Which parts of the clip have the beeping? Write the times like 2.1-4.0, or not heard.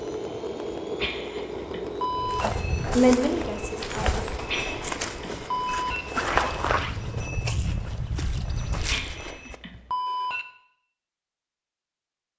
1.0-2.5, 4.5-6.0, 8.8-10.4.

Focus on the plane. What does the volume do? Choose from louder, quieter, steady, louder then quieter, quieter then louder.
quieter.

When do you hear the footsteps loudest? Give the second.
6 s.